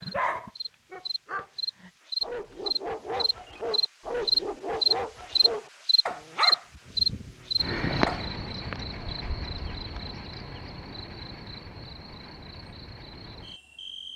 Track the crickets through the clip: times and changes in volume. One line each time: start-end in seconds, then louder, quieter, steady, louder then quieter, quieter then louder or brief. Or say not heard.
0.0-14.1 louder then quieter.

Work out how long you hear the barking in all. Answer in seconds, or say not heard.
8 s.